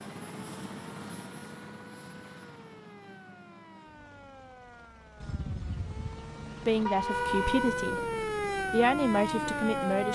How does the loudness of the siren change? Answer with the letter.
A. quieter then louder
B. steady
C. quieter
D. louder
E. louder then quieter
D.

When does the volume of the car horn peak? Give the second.
7 s.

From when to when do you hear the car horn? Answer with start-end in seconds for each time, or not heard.
5.2-7.8.